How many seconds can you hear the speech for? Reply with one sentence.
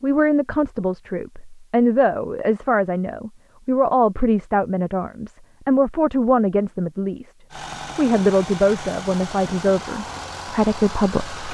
You can hear the speech for 11 seconds altogether.